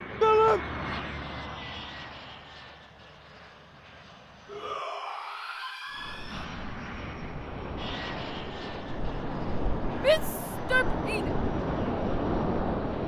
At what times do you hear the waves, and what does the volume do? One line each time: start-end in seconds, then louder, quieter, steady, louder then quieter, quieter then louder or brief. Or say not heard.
5.9-13.0 louder.